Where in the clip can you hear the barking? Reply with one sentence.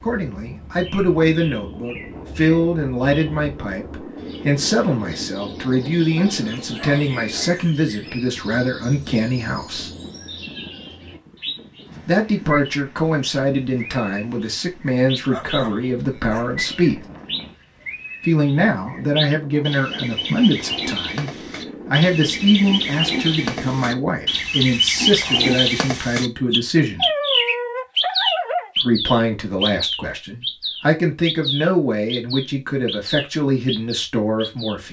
You can hear the barking from 6.2 to 7.7 s, from 15.3 to 16.6 s and from 26.9 to 28.7 s.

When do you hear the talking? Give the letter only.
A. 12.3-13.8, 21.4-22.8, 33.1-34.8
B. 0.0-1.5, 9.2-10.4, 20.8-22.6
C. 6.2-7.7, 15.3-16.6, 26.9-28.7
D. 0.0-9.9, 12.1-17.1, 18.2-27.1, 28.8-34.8
D.